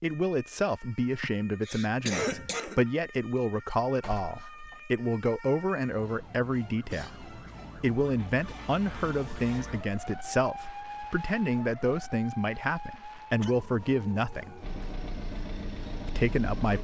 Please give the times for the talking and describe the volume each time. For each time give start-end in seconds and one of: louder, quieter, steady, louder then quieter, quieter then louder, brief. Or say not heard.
0.0-14.6 steady
16.1-16.7 brief.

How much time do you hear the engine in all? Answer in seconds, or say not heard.
2 s.